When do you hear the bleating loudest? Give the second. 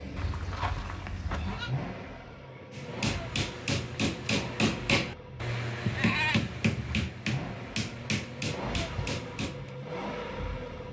6 s.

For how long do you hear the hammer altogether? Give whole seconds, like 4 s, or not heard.
7 s.